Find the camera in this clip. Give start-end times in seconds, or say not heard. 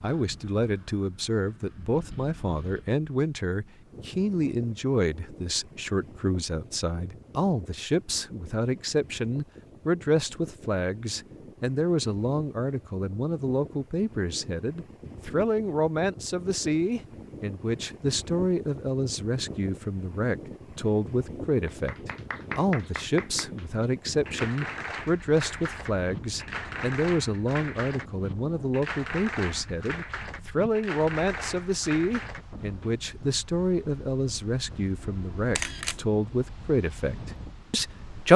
35.0-36.0.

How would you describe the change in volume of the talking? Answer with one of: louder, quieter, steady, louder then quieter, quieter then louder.
steady.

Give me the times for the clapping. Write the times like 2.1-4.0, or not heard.
21.6-32.9.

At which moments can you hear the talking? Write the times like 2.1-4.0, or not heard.
0.0-38.3.